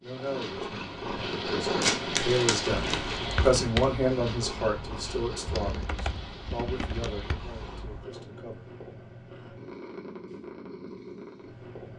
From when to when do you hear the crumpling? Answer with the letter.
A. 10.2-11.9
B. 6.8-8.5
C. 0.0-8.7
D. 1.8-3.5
D.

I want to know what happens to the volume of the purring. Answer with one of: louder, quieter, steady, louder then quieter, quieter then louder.
quieter.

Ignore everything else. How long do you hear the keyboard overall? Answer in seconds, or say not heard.
5 s.